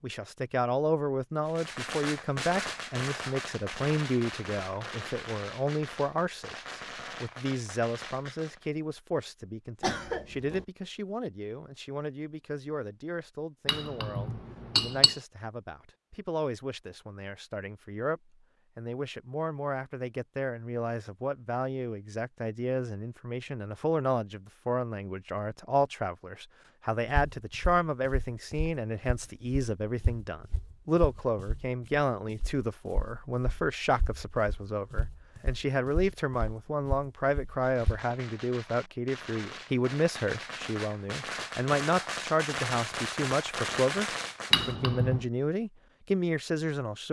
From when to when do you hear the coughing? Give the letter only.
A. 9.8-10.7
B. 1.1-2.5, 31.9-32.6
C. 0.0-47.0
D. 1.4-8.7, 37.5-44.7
A.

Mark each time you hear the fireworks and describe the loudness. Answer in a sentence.
The fireworks can be heard from 1.4 to 8.7 s, getting quieter; and from 37.5 to 44.7 s, getting louder.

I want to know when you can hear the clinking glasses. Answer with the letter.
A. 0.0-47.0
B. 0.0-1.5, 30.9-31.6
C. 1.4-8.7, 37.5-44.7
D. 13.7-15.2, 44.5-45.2
D.